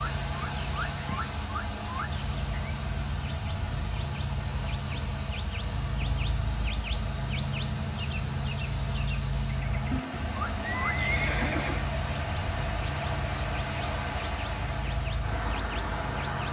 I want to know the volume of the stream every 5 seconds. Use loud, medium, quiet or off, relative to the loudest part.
loud, medium, loud, loud.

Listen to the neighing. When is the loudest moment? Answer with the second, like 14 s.
11 s.